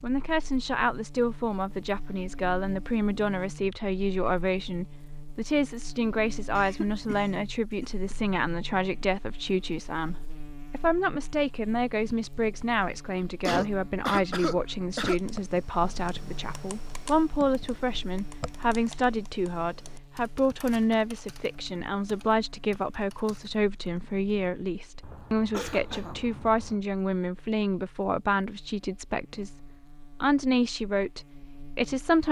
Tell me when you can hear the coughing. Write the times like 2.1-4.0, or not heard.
6.5-8.2, 13.4-15.2, 25.0-26.8.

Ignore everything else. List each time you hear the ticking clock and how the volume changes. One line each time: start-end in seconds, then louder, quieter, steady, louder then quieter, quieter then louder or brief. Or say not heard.
not heard.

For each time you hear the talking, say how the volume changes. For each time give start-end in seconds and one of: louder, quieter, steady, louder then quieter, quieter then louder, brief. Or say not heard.
0.0-32.2 steady.